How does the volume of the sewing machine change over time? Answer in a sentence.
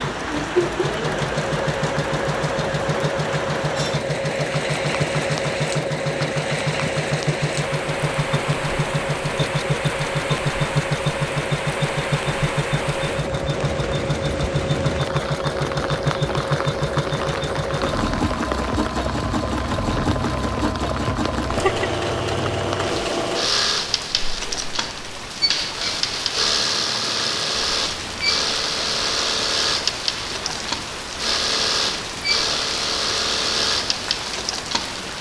The loudness of the sewing machine stays about the same.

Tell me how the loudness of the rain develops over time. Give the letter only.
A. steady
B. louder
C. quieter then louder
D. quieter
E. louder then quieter
A.